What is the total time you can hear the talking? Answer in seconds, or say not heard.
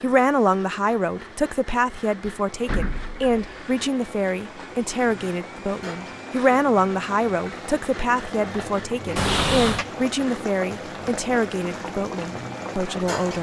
13 s.